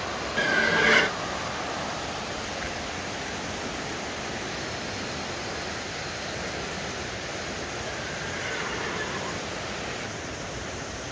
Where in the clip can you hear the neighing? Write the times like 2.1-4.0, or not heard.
0.3-1.1, 7.8-9.4.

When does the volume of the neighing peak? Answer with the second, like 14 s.
1 s.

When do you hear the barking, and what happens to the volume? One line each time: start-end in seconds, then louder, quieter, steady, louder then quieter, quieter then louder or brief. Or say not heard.
not heard.